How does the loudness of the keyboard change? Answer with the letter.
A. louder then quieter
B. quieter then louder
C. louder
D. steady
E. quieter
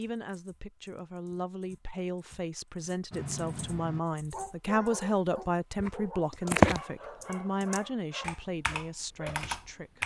A.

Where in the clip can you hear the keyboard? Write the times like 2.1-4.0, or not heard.
0.0-5.0, 5.8-10.0.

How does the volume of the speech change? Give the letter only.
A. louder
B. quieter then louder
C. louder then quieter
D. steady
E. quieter
C.